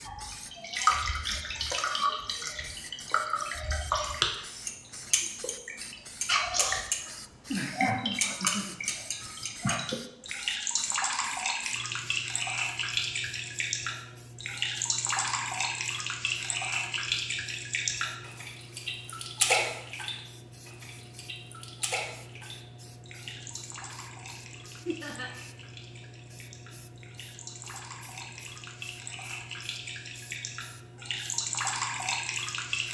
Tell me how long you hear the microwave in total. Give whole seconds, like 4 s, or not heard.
not heard.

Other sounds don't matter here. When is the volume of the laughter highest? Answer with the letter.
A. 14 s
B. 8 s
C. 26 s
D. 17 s
B.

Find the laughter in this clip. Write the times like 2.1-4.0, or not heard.
7.5-8.8, 24.9-25.3.